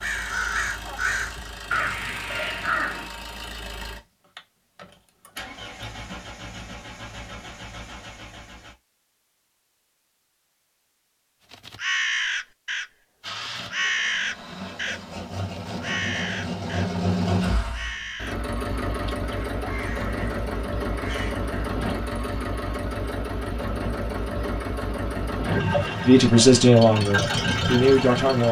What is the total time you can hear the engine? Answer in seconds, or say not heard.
24 s.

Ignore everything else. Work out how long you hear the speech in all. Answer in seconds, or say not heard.
2 s.